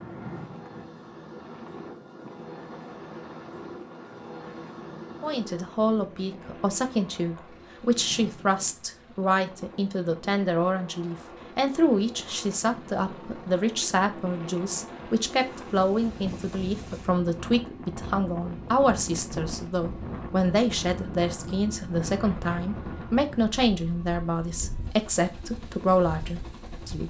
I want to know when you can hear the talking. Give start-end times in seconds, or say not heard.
5.2-27.0.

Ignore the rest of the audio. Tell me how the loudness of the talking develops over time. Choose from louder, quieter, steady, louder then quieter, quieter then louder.
steady.